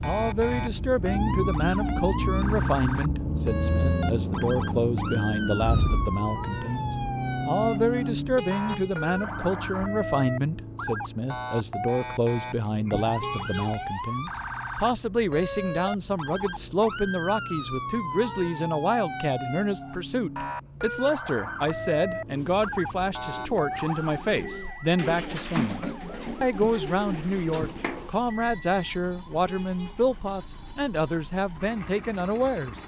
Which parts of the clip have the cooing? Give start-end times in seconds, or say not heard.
22.2-28.1.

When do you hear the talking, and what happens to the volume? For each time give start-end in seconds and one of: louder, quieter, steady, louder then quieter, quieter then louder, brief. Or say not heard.
0.0-32.8 steady.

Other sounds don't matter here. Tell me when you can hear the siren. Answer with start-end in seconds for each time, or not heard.
0.0-32.8.